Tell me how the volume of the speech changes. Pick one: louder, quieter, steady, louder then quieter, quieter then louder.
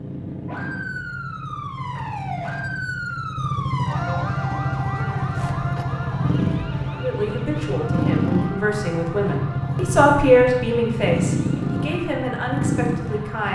louder then quieter.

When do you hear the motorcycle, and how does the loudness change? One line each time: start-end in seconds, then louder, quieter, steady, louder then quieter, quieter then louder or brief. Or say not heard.
0.0-13.4 louder.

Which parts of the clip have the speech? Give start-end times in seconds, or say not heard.
7.0-13.4.